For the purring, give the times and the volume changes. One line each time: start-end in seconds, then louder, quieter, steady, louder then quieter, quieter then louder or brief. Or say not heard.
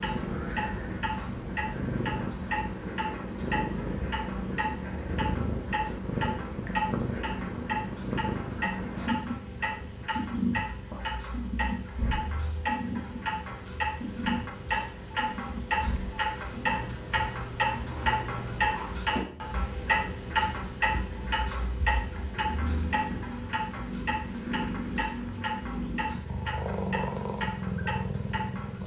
0.0-28.8 quieter then louder.